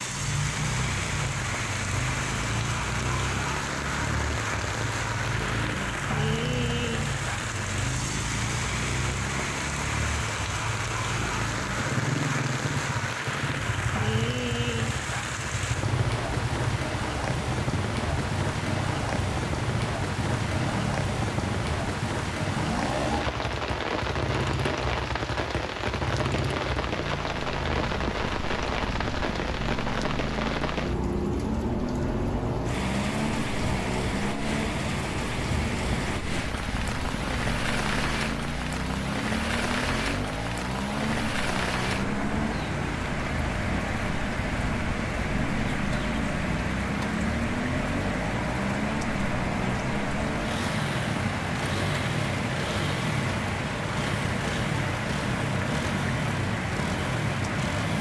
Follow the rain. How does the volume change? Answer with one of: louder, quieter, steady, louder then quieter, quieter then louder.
steady.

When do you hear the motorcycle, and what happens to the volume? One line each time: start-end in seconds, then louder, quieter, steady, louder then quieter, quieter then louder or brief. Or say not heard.
0.0-57.9 steady.